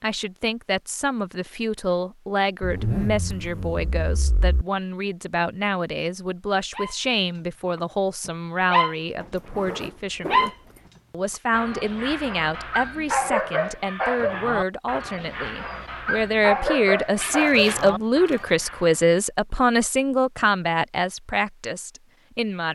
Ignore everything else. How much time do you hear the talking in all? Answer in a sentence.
The talking can be heard for 22 seconds in total.